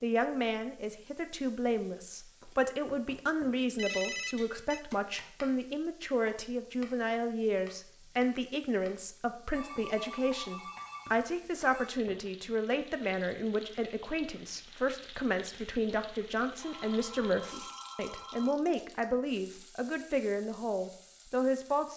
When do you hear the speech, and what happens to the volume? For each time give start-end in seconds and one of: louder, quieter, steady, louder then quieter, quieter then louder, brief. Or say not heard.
0.0-21.9 steady.